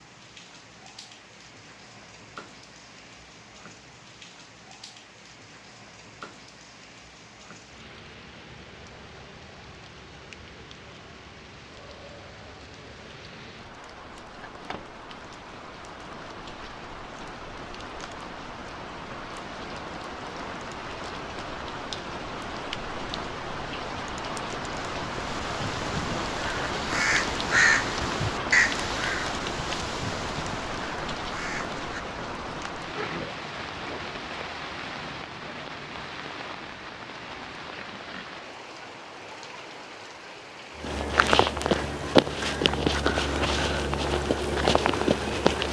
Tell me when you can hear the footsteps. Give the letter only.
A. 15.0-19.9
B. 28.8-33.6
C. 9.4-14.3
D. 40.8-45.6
D.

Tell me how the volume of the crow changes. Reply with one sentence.
The loudness of the crow goes up, then down.